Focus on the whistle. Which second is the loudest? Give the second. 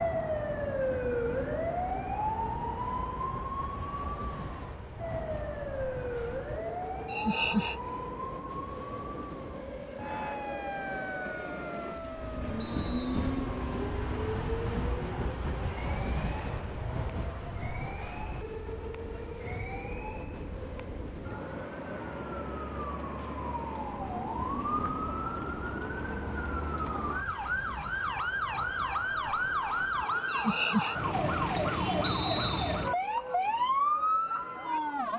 32 s.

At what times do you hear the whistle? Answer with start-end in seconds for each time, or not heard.
12.6-13.2, 32.0-32.9.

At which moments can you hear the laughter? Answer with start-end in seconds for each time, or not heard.
7.0-7.8, 30.2-30.9.